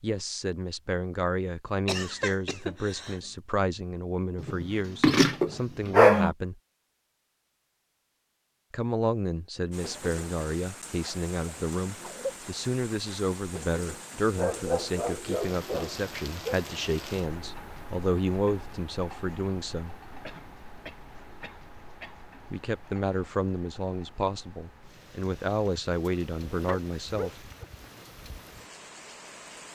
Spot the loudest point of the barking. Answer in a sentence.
The volume of the barking peaks at 6 seconds.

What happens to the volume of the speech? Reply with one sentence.
The loudness of the speech stays about the same.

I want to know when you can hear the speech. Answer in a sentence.
You can hear the speech from 0.0 to 6.5 s, from 8.7 to 19.9 s and from 22.5 to 27.5 s.